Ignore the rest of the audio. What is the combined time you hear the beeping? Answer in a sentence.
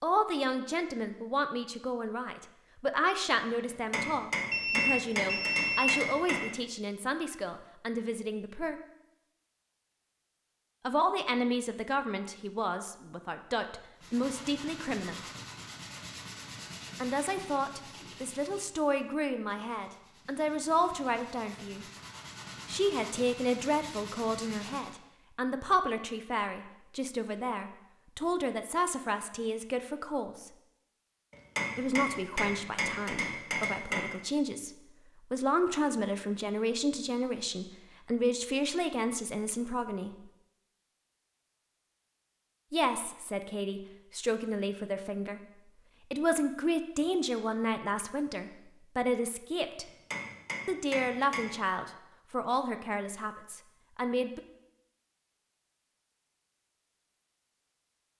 The beeping can be heard for 2 seconds in total.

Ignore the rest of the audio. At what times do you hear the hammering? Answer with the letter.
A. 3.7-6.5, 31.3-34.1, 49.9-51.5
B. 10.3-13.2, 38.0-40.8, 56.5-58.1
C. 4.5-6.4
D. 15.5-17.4
A.